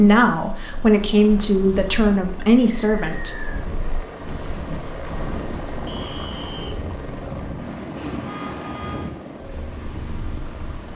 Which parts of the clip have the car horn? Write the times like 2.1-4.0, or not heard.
8.2-9.1.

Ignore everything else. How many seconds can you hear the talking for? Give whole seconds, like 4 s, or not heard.
3 s.